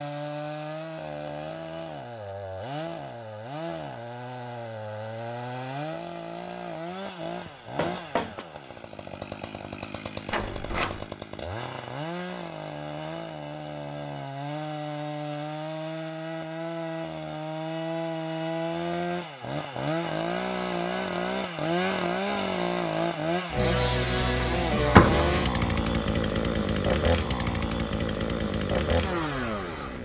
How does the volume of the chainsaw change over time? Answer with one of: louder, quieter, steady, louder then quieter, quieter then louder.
louder.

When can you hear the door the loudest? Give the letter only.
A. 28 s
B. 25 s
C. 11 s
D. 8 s
B.